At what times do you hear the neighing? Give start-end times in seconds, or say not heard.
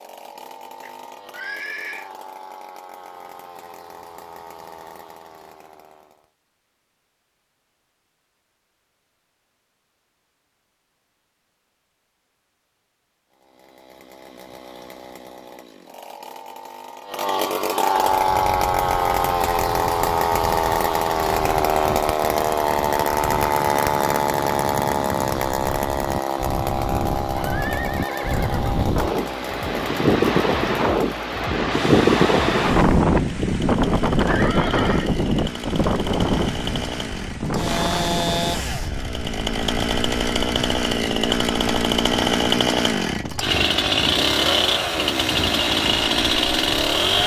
0.8-2.1, 27.3-28.9, 34.2-35.1.